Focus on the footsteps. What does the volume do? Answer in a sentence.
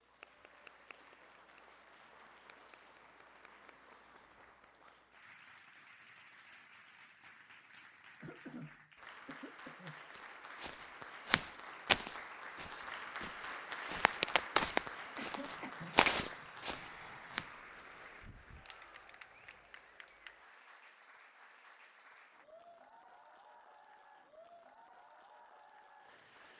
The volume of the footsteps goes down, then up.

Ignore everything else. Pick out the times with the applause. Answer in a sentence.
The applause can be heard from 0.0 to 26.5 s.